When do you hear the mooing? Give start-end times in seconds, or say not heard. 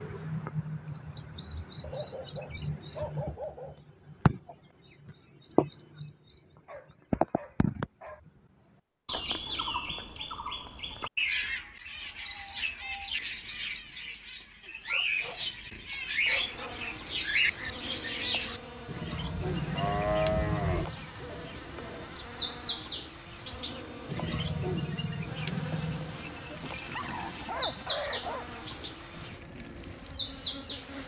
19.1-20.9.